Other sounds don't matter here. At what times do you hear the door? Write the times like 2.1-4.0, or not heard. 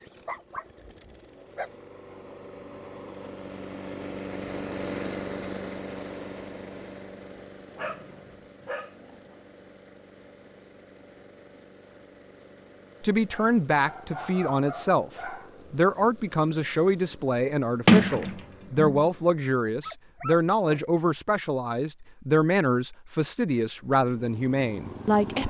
17.9-19.1.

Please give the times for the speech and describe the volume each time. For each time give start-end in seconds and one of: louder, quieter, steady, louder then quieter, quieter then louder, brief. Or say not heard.
13.0-25.4 steady.